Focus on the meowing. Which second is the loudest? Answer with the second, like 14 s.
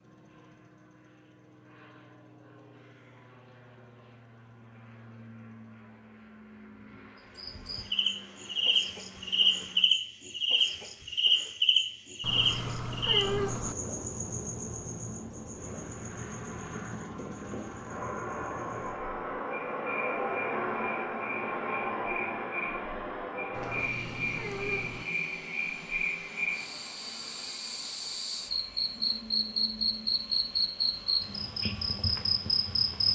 13 s.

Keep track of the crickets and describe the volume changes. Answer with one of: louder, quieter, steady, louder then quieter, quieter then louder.
quieter then louder.